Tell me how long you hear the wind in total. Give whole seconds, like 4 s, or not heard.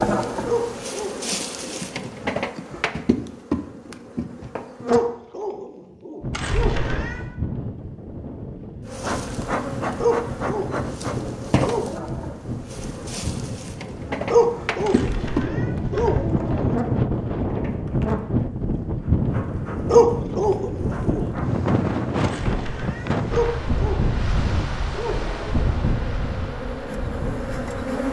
22 s.